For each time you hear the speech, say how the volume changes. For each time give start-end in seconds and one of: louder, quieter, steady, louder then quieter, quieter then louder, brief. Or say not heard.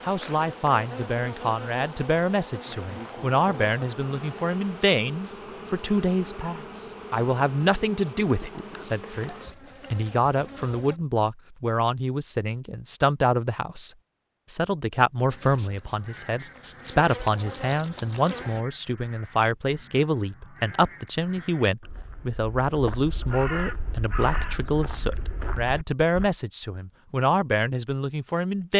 0.0-28.7 steady.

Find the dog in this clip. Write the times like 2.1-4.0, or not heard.
not heard.